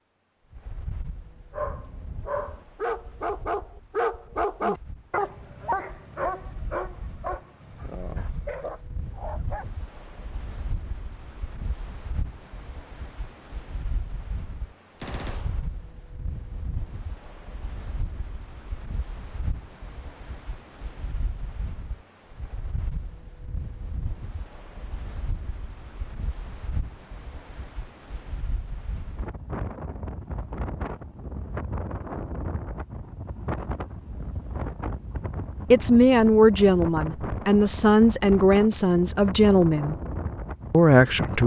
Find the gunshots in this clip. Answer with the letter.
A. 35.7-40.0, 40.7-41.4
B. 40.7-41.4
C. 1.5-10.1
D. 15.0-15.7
D.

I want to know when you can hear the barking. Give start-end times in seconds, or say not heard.
1.5-10.1.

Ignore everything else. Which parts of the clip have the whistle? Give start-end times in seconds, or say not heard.
not heard.